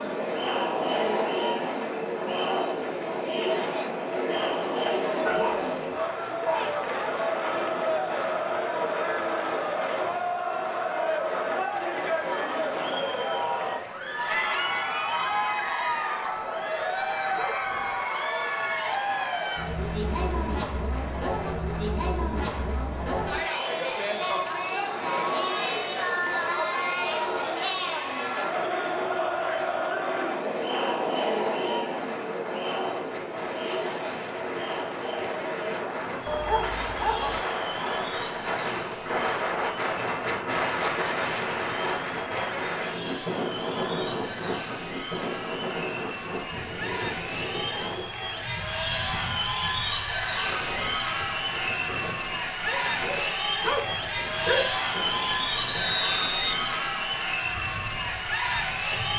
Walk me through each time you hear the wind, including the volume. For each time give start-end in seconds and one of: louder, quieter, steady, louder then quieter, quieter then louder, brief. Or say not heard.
0.0-59.1 louder then quieter.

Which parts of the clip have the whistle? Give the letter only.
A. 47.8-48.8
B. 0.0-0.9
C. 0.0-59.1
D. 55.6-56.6
D.